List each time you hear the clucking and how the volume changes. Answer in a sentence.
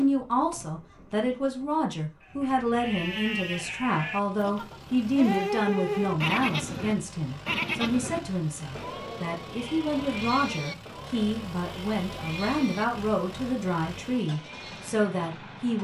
You can't hear the clucking here.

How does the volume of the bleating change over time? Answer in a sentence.
The loudness of the bleating goes up, then down.